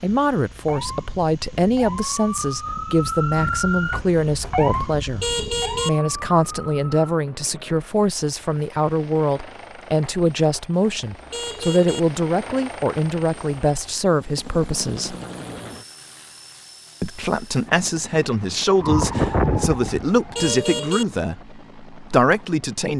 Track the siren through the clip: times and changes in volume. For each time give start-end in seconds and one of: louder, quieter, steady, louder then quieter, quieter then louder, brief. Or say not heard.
0.1-7.1 louder then quieter
18.8-20.7 brief.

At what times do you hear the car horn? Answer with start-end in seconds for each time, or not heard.
3.9-5.9, 10.0-12.0, 19.1-21.1.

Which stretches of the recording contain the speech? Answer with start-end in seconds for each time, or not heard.
0.0-15.2, 17.0-22.9.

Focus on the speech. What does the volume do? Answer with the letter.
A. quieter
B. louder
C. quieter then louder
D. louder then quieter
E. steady
E.